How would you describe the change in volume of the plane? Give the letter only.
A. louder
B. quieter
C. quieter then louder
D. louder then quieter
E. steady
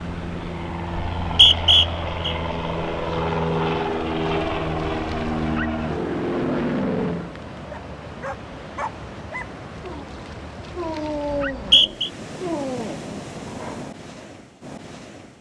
A.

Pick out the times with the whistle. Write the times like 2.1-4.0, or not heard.
1.2-2.4, 11.3-12.1.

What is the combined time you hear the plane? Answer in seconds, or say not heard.
7 s.